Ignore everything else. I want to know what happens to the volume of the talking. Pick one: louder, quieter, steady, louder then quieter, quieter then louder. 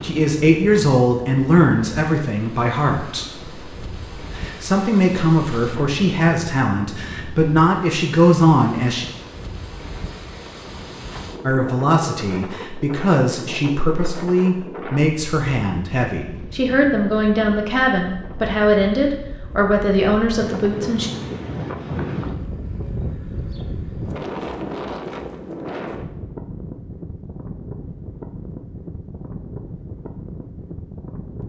steady.